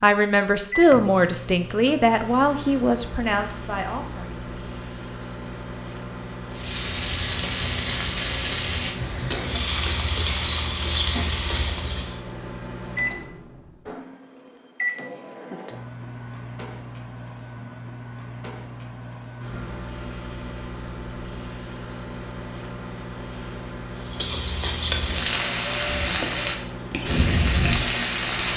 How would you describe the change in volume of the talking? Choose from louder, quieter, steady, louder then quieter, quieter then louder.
quieter.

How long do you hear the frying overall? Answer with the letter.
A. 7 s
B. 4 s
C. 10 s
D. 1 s
C.